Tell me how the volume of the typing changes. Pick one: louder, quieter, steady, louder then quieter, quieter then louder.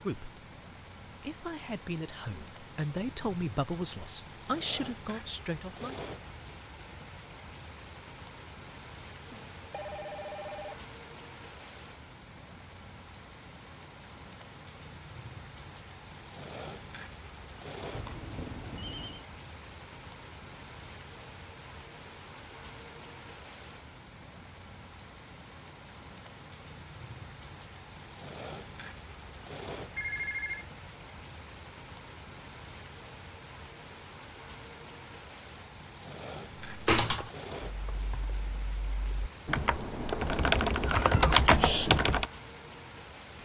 quieter then louder.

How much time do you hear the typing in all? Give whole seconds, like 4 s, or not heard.
6 s.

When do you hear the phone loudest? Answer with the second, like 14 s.
30 s.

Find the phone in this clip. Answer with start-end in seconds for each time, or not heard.
9.2-10.8, 17.9-19.2, 29.9-30.6.